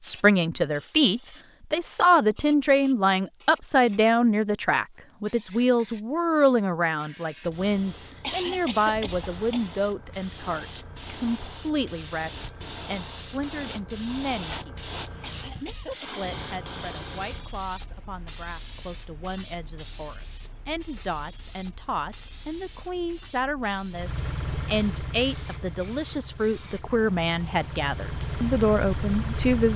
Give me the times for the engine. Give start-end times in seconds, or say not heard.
23.9-29.7.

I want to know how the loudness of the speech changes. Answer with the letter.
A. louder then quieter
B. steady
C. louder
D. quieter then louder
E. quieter
D.